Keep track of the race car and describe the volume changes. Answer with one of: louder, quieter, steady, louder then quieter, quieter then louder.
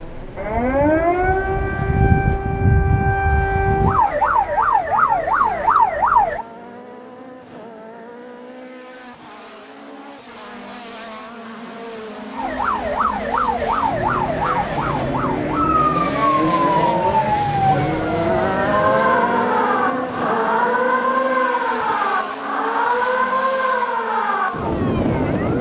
louder then quieter.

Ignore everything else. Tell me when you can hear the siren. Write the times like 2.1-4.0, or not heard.
0.1-6.5, 12.3-25.5.